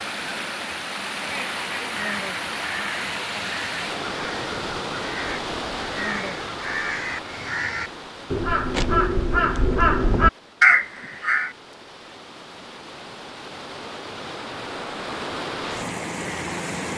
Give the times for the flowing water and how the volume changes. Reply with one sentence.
You can hear the flowing water from 0.0 to 16.9 s, getting quieter then louder.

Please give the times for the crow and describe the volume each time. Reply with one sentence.
The crow can be heard from 1.9 to 11.5 s, getting louder.